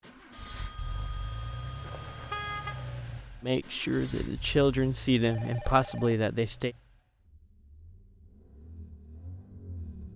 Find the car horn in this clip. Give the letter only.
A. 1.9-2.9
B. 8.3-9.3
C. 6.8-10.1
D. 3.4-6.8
A.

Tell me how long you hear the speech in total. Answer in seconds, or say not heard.
3 s.